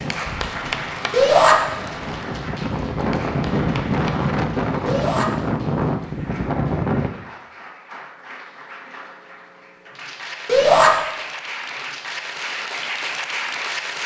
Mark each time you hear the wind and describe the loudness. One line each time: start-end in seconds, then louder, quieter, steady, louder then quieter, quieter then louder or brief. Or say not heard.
0.0-7.1 louder.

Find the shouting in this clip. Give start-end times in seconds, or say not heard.
1.1-1.6, 4.8-5.2, 10.4-10.9.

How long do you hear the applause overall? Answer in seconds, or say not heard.
14 s.